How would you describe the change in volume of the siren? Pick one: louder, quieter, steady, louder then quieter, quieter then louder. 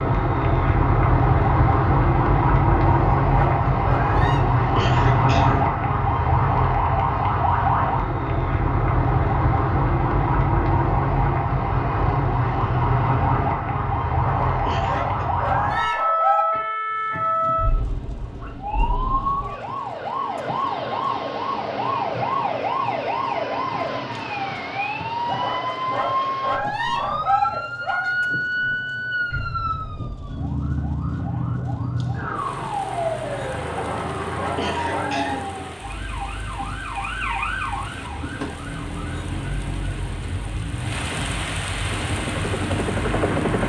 quieter.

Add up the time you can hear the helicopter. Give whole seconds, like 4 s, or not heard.
2 s.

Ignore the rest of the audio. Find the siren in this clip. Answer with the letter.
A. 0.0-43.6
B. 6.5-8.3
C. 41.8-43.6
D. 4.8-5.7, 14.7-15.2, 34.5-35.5
A.